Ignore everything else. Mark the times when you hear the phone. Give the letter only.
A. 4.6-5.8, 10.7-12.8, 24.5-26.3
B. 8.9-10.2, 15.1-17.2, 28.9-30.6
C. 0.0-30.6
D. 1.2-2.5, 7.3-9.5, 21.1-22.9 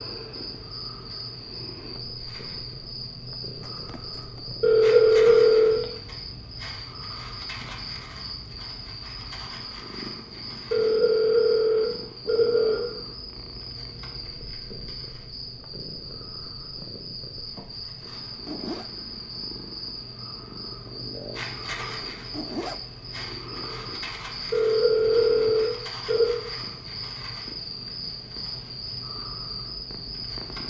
A.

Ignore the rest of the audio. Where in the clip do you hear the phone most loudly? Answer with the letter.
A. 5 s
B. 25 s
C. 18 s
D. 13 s
A.